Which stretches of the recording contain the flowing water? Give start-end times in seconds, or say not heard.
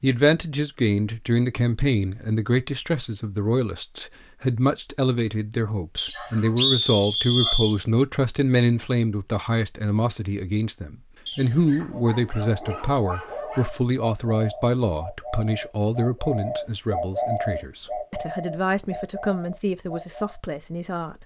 not heard.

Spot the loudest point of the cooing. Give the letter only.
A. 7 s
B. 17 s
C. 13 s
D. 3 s
B.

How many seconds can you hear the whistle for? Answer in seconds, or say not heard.
2 s.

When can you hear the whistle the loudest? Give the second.
7 s.